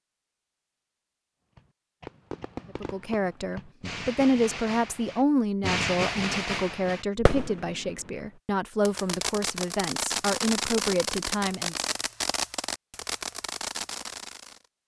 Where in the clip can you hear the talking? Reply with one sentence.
The talking can be heard from 2.8 to 11.8 s.